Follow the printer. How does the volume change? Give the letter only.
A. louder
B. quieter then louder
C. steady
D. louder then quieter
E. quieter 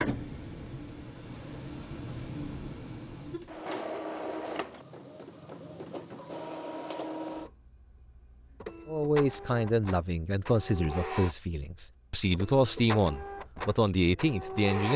C.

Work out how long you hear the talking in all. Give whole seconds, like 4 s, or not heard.
6 s.